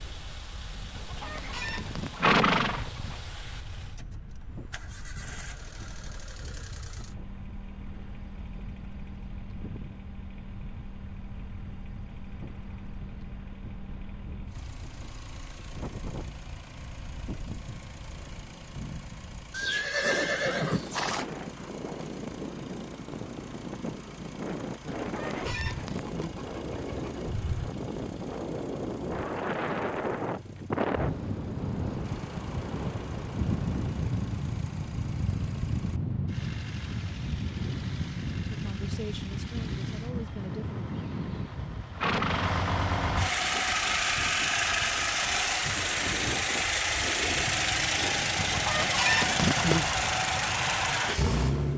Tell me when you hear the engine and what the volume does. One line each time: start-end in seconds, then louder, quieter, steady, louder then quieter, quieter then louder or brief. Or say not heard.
0.0-51.7 louder.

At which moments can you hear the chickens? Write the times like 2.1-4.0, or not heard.
0.9-3.2, 25.0-27.2, 48.4-50.2.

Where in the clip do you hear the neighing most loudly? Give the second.
2 s.